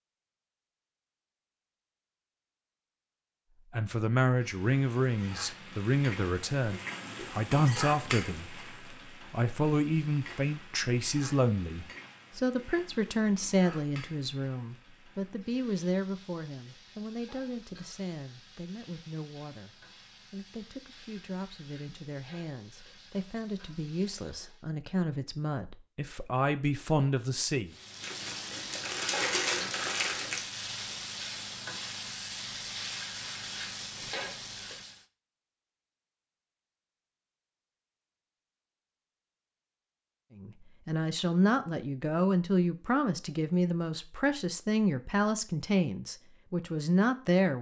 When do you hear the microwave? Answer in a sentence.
The microwave can't be heard in this clip.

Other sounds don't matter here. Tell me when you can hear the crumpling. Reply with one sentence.
You can hear the crumpling from 28.0 to 30.4 s.